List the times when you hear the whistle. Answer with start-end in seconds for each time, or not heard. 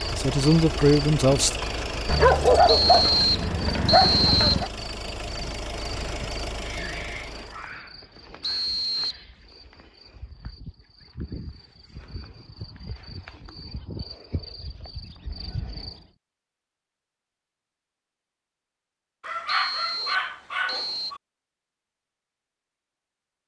2.6-4.7, 8.4-9.2, 19.4-21.1.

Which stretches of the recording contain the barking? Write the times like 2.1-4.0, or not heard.
2.0-4.7, 19.2-21.2.